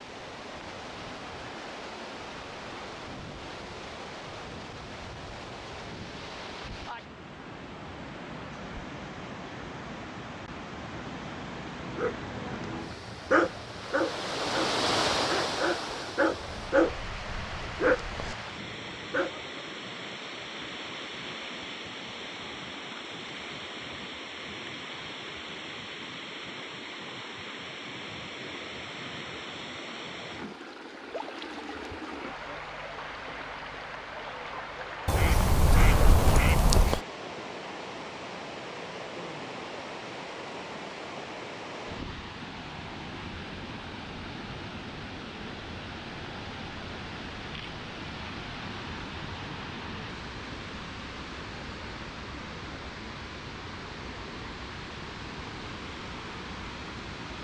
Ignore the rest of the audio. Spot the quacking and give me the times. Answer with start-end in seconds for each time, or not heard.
16.4-18.4, 35.0-37.0.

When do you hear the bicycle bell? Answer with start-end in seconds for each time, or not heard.
not heard.